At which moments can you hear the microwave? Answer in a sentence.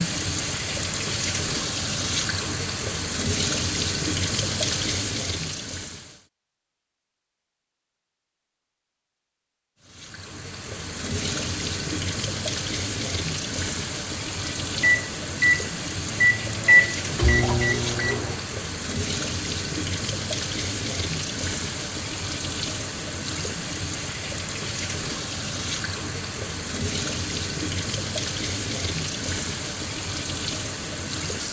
You can hear the microwave from 14.7 to 18.4 s.